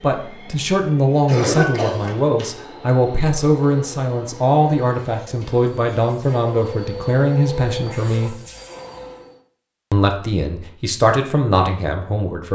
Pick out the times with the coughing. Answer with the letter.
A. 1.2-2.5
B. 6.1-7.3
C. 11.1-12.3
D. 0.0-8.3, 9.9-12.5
A.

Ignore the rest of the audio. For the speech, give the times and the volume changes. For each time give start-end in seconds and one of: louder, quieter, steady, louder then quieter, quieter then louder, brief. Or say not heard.
0.0-8.3 steady
9.9-12.5 brief.